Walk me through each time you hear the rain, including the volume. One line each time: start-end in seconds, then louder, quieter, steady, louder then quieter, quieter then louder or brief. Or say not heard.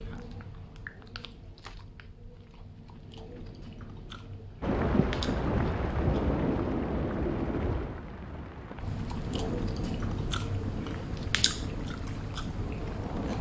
4.6-13.3 quieter.